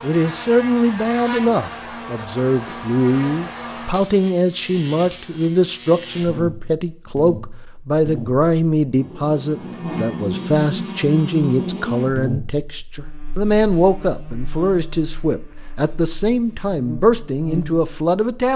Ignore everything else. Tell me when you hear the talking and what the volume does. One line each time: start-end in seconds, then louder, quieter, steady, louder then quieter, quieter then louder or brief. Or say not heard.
0.0-18.5 steady.